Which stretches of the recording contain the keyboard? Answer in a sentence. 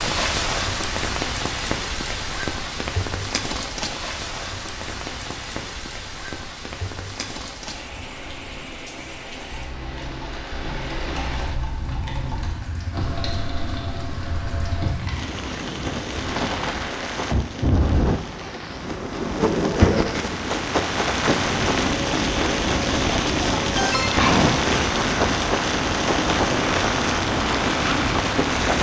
You can hear the keyboard from 9.5 to 15.4 s.